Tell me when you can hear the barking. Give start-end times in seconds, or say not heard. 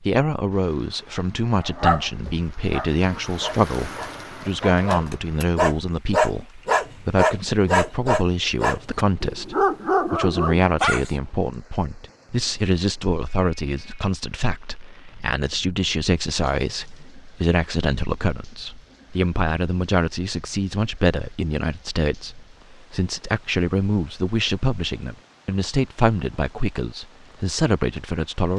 1.6-11.1.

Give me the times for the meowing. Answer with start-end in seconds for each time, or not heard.
not heard.